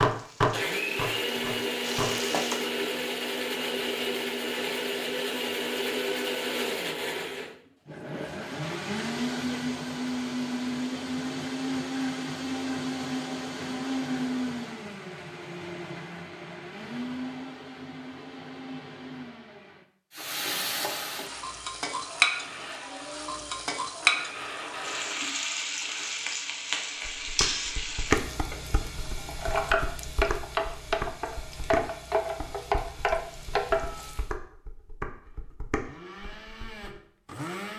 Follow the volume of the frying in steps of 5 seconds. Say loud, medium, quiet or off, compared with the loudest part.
medium, off, off, off, loud, loud, loud, off.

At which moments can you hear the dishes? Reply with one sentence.
The dishes can be heard from 0.0 to 2.5 s and from 27.1 to 36.9 s.